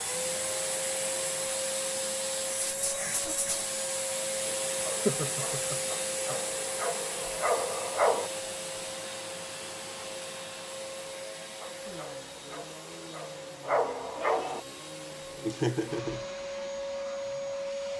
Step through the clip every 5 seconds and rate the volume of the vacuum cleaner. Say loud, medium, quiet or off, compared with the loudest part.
loud, loud, medium, loud.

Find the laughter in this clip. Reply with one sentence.
You can hear the laughter from 5.0 to 6.3 s and from 15.4 to 16.2 s.